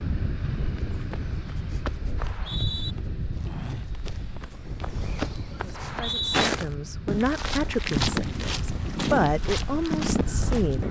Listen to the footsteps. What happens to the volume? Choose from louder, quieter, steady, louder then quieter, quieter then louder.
louder.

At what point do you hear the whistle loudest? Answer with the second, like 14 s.
6 s.